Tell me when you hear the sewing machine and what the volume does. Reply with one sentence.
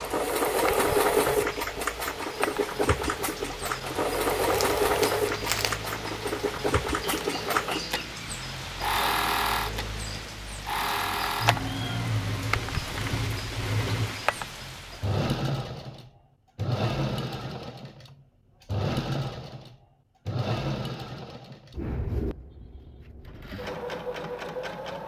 The sewing machine can be heard from 0.0 to 25.0 s, getting quieter.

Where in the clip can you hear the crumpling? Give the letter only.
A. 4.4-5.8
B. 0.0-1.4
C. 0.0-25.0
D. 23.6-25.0
A.